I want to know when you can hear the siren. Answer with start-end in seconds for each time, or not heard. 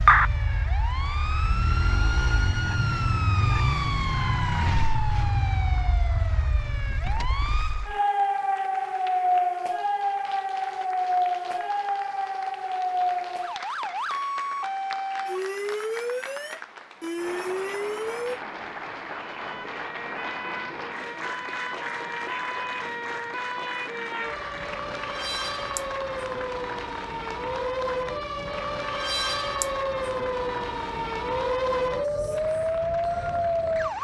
0.0-33.9.